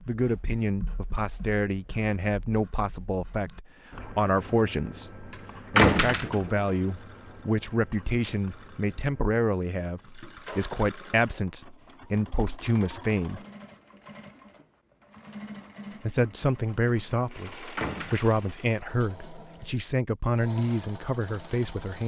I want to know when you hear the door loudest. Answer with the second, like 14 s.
6 s.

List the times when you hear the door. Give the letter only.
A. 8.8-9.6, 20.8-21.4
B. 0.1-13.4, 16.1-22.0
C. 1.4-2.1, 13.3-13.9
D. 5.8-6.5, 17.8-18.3
D.